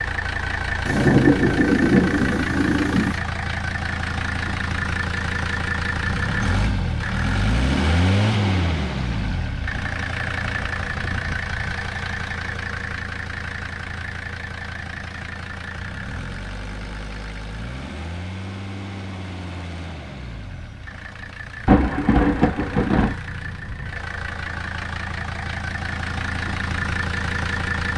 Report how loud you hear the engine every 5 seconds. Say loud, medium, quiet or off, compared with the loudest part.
loud, loud, medium, medium, medium, loud.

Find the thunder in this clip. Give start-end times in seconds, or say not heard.
0.8-3.1, 21.6-23.1.